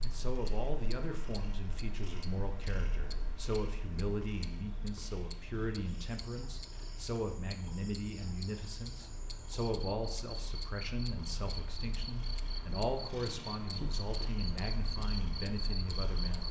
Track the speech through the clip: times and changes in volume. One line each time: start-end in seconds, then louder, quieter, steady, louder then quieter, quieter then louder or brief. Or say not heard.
0.0-16.4 steady.